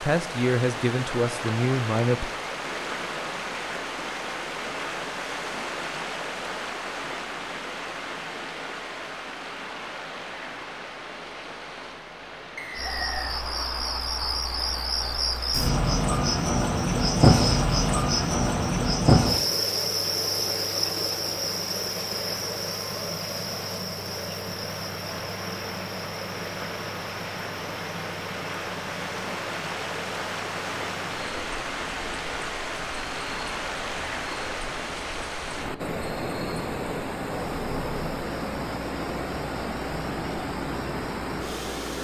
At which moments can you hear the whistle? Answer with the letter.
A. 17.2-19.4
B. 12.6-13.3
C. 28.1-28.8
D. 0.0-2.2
B.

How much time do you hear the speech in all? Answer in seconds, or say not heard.
2 s.